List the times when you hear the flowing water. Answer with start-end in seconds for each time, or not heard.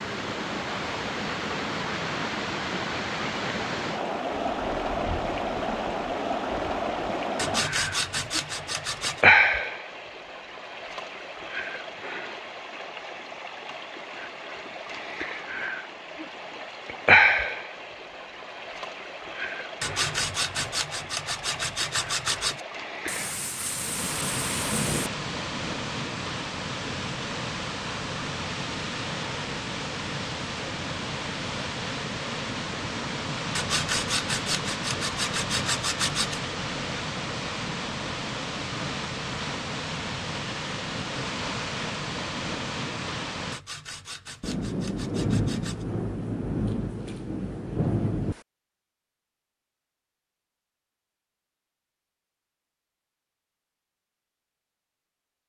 0.0-43.6.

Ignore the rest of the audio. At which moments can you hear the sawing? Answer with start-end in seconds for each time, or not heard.
7.3-9.2, 19.8-22.6, 33.5-36.4, 43.5-45.9.